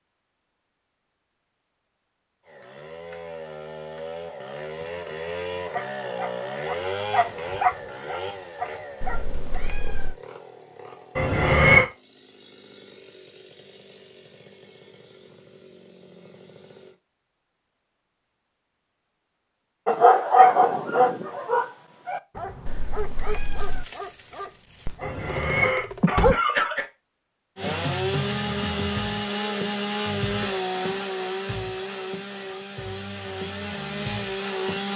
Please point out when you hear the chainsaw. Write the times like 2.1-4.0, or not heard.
2.5-16.9, 27.6-34.9.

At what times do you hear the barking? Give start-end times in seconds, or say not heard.
5.7-9.3, 19.9-26.4.